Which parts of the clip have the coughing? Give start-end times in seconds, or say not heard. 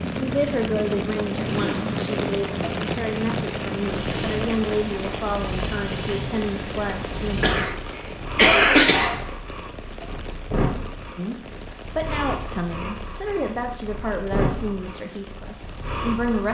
7.4-9.2.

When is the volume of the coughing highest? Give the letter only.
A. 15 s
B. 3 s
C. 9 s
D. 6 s
C.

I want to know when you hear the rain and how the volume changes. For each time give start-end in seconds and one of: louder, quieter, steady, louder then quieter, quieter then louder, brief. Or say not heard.
0.0-16.4 quieter.